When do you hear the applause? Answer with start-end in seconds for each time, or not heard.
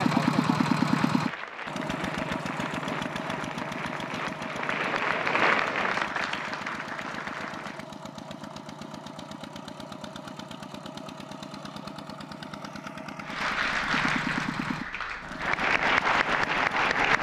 0.0-7.9, 13.2-17.1.